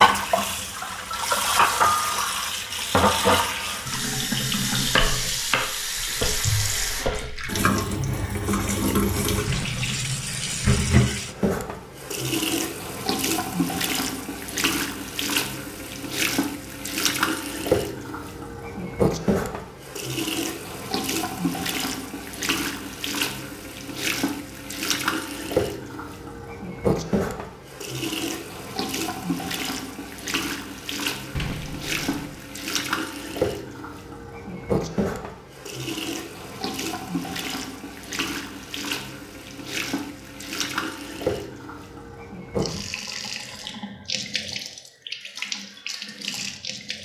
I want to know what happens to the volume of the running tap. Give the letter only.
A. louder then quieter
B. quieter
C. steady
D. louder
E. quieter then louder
B.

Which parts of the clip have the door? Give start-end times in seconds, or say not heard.
9.4-10.8, 31.4-32.5.